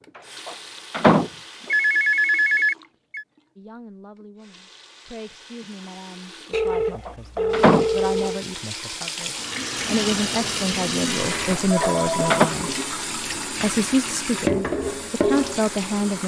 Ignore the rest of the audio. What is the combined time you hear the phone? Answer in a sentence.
You can hear the phone for 5 seconds altogether.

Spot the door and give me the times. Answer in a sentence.
You can hear the door from 0.1 to 1.3 s, from 6.8 to 7.8 s and from 11.5 to 12.5 s.